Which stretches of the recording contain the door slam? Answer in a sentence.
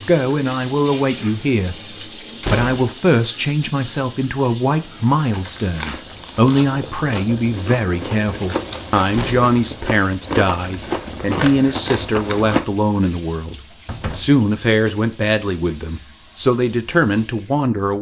You can hear the door slam from 2.4 to 2.9 s, from 9.1 to 9.6 s and from 13.8 to 14.3 s.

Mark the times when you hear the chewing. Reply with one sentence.
You can hear the chewing from 5.3 to 12.7 s.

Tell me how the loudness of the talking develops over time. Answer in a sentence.
The loudness of the talking stays about the same.